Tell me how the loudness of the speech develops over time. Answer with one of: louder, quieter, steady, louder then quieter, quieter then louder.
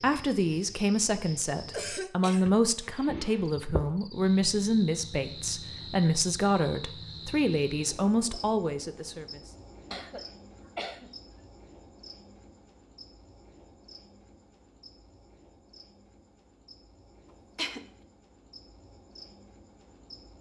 steady.